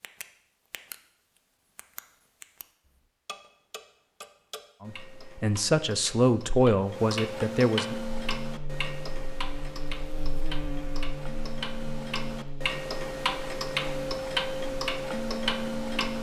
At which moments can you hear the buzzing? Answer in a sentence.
You can hear the buzzing from 8.1 to 16.1 s.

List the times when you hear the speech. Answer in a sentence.
You can hear the speech from 4.8 to 8.0 s.